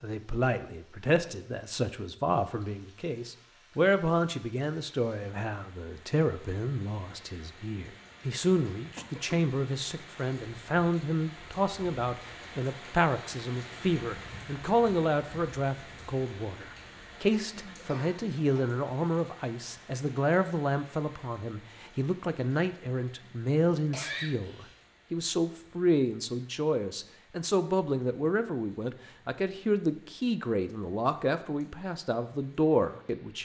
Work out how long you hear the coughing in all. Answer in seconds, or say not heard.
2 s.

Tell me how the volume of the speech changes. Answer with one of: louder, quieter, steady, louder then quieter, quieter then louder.
steady.